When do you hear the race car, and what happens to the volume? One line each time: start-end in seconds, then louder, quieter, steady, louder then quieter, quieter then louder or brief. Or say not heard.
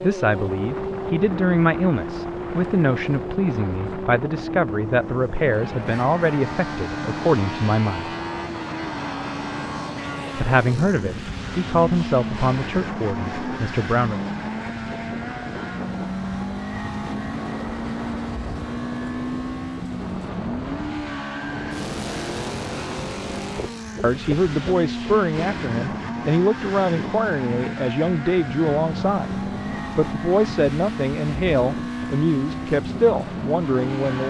0.0-34.2 steady.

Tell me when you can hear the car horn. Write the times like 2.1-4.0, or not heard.
not heard.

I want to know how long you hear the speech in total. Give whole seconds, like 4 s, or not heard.
22 s.